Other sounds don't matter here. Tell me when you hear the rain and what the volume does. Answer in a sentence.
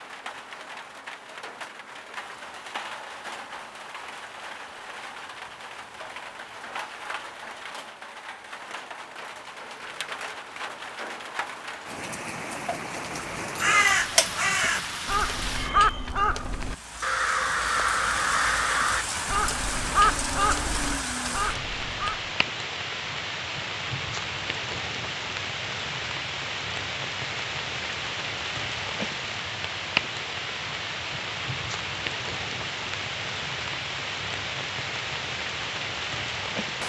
The rain can be heard from 0.0 to 36.8 s, getting louder.